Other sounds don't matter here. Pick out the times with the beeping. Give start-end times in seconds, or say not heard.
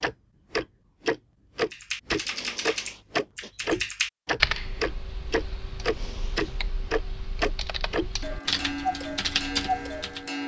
not heard.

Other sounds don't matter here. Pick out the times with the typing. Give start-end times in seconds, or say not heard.
1.7-10.2.